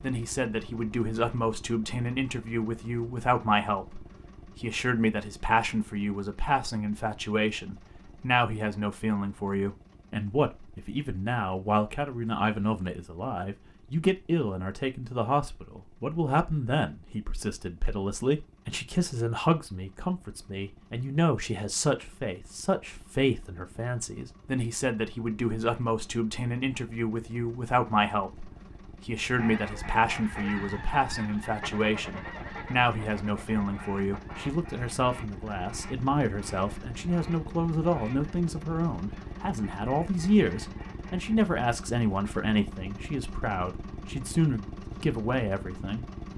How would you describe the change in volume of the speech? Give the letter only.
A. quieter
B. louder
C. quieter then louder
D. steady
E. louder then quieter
D.